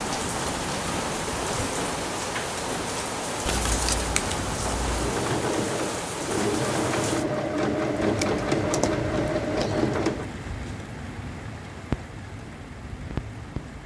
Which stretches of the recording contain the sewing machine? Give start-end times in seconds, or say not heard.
4.9-10.3.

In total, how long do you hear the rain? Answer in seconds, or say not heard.
14 s.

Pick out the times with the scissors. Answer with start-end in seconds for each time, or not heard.
3.5-5.2, 8.2-9.9.